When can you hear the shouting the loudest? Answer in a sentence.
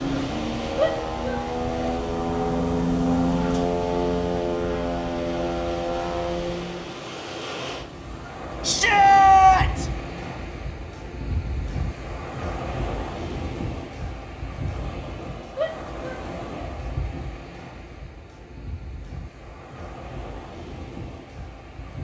The loudest moment of the shouting is at 9 seconds.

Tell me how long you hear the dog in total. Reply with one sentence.
The dog can't be heard in this clip.